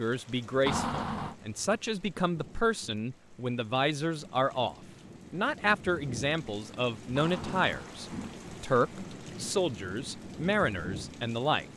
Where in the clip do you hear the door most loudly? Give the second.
1 s.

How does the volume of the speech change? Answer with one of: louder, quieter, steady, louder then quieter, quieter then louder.
steady.